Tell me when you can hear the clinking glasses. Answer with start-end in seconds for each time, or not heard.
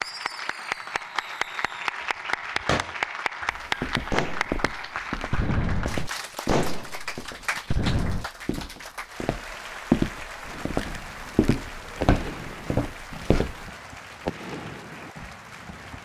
not heard.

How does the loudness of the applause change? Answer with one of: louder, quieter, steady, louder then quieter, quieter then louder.
quieter.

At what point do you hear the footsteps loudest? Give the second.
10 s.